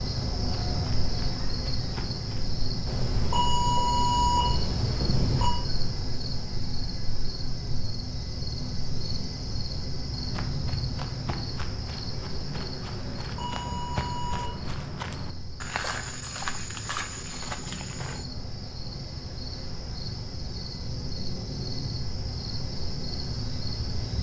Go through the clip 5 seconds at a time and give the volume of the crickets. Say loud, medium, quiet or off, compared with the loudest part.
loud, loud, loud, medium, loud.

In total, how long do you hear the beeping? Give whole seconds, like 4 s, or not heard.
4 s.